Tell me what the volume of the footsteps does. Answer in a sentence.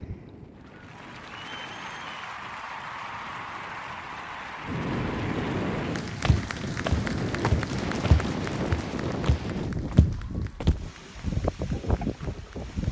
The volume of the footsteps goes down, then up.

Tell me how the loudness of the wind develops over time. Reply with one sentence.
The loudness of the wind goes up.